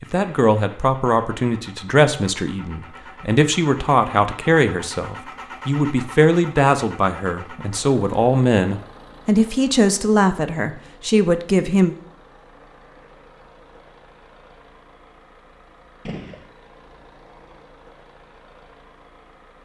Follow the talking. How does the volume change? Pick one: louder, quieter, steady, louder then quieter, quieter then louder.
steady.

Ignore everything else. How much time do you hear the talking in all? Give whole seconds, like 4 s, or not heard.
12 s.